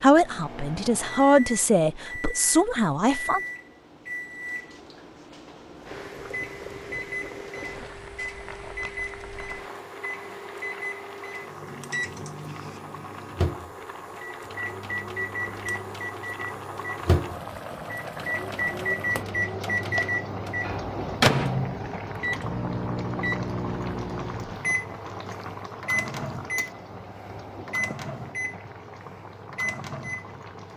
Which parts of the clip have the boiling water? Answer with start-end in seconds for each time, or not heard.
5.8-30.7.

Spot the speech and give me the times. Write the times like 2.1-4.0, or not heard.
0.0-3.4.